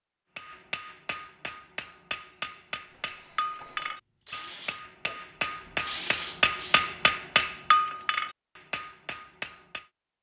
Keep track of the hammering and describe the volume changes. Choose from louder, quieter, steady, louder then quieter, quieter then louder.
louder.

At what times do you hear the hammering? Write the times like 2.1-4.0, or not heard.
0.3-9.8.